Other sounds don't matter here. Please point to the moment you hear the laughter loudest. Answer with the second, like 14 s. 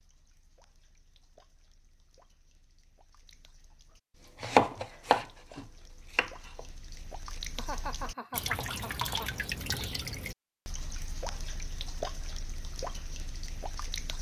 8 s.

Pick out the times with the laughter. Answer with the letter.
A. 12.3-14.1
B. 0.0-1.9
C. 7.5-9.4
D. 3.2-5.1
C.